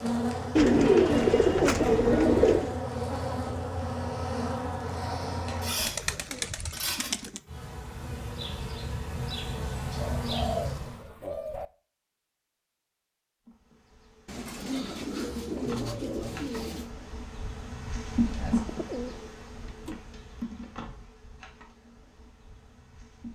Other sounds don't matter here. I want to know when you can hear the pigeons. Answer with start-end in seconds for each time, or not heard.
0.6-2.8, 5.8-7.4, 9.9-11.7, 14.2-16.9, 18.6-20.0.